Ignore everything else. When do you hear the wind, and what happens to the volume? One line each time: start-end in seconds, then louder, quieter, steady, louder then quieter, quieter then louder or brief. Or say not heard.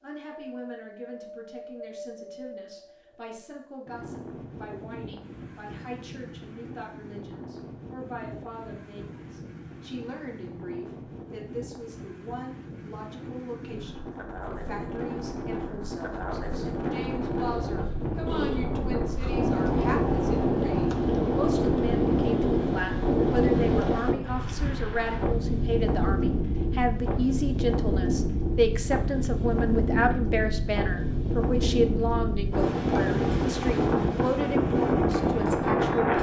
0.2-36.1 louder.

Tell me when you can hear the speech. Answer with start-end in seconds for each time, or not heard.
0.0-36.1.